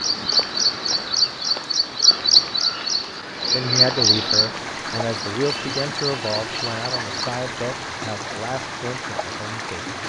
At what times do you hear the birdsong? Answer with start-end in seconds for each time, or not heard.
0.0-7.4.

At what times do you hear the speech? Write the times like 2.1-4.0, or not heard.
3.5-9.9.